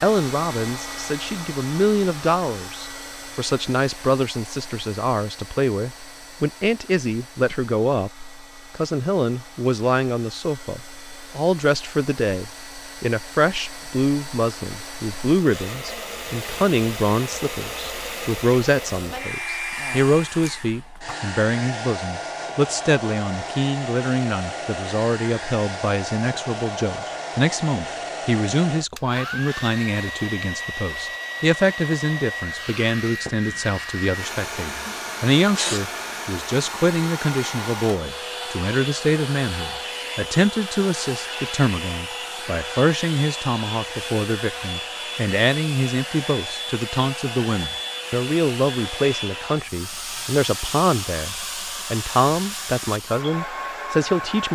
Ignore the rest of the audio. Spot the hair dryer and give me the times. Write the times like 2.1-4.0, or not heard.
0.0-54.5.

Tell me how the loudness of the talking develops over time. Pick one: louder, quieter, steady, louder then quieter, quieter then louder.
steady.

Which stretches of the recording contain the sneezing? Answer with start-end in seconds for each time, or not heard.
34.8-35.9.